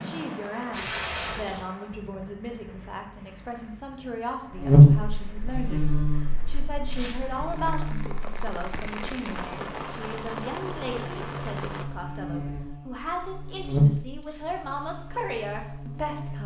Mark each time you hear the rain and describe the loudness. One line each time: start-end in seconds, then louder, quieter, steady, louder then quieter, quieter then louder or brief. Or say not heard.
0.0-11.8 quieter then louder.